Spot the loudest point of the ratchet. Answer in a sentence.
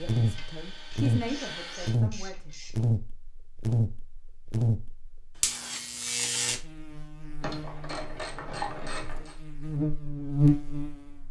The volume of the ratchet peaks at 9 seconds.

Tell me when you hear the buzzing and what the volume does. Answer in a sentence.
The buzzing can be heard from 0.0 to 11.2 s, getting quieter then louder.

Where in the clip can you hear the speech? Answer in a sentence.
The speech can be heard from 0.0 to 2.5 s.